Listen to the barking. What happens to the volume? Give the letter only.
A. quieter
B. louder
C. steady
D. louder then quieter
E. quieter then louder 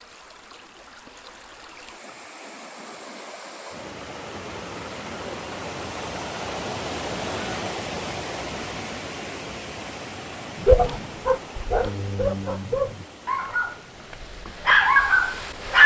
E.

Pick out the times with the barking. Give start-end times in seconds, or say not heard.
10.6-15.8.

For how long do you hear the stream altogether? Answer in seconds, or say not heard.
16 s.